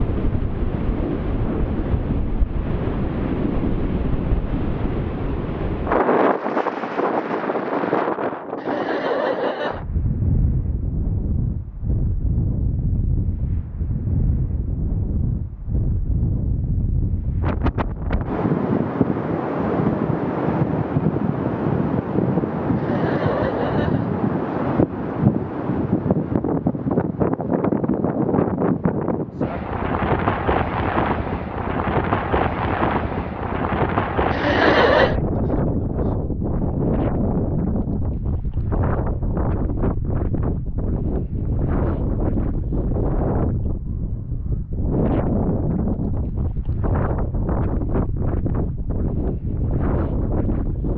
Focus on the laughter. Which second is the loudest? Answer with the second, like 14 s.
35 s.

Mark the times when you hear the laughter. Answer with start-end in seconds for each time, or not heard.
8.6-9.8, 22.8-24.1, 34.3-35.1.